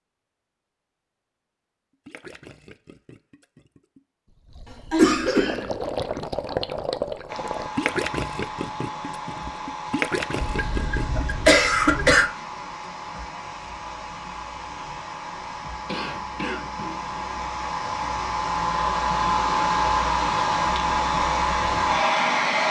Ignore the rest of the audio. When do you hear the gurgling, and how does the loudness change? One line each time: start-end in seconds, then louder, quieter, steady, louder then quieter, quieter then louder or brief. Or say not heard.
2.0-11.2 louder.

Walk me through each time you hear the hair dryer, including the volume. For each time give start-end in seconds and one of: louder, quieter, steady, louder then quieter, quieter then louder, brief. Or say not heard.
7.2-22.6 louder.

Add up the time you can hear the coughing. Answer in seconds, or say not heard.
4 s.